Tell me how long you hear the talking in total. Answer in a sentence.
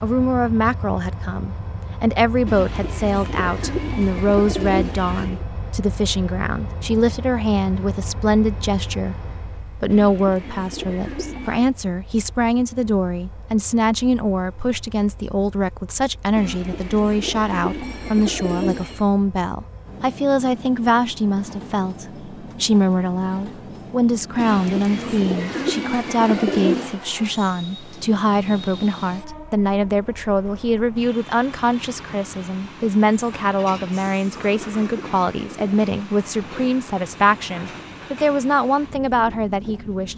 You can hear the talking for 40 seconds altogether.